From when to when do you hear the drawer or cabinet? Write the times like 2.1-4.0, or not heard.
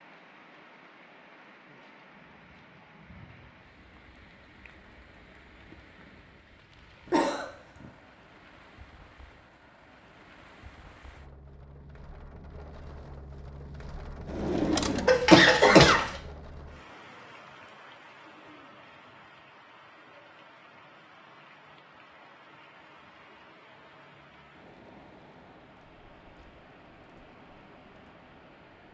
14.2-16.1.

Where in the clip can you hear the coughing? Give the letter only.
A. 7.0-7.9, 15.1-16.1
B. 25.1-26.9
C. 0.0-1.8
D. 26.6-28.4
A.